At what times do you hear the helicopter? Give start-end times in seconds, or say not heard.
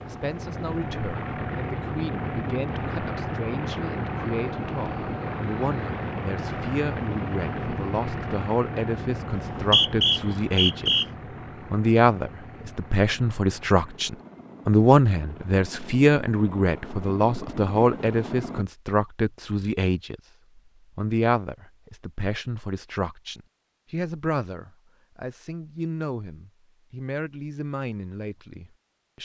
0.0-18.6.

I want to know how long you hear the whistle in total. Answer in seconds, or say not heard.
2 s.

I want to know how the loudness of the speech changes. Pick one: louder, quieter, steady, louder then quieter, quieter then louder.
louder then quieter.